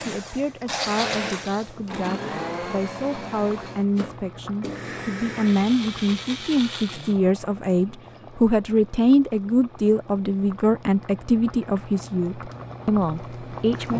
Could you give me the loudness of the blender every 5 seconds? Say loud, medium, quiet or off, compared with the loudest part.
loud, loud, off.